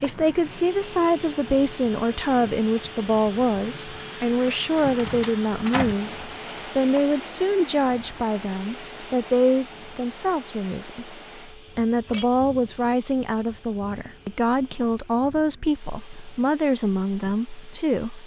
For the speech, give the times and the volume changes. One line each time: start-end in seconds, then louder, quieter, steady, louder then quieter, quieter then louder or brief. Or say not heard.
0.0-18.2 steady.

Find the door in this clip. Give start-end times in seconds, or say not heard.
4.8-6.0.